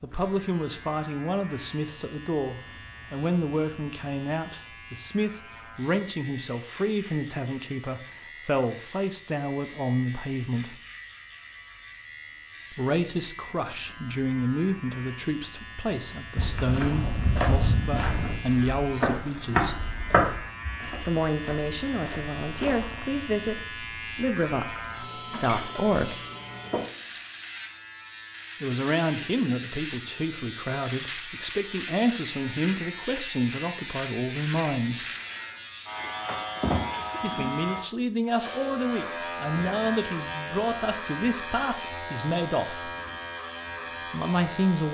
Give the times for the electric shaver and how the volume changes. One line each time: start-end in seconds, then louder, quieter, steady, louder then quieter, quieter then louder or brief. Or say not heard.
0.0-44.8 louder.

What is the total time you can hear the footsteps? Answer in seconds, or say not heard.
7 s.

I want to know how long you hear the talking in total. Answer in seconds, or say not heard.
36 s.